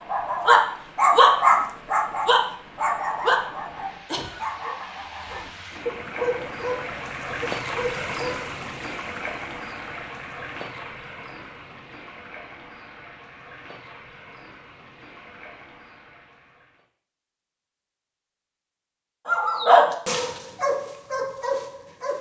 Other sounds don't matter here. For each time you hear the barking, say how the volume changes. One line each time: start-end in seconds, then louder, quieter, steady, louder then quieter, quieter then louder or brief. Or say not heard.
0.1-8.4 quieter
19.2-22.1 brief.